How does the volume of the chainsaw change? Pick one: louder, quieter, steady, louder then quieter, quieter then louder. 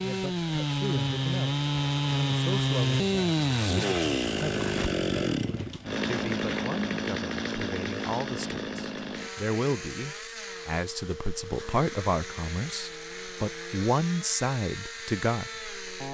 quieter.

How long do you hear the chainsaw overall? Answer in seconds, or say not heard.
16 s.